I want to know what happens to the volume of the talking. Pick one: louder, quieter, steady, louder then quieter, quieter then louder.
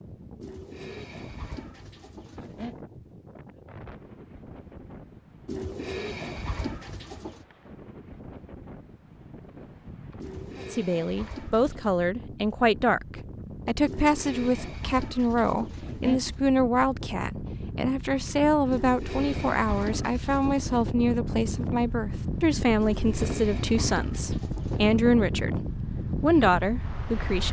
steady.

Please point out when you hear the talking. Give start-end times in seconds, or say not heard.
10.6-27.4.